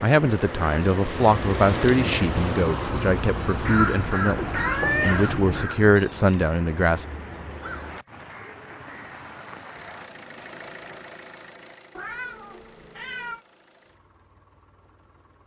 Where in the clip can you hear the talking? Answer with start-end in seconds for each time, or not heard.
0.0-7.0.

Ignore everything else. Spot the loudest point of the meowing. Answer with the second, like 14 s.
5 s.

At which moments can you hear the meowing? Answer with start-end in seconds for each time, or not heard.
3.6-5.7, 11.9-13.4.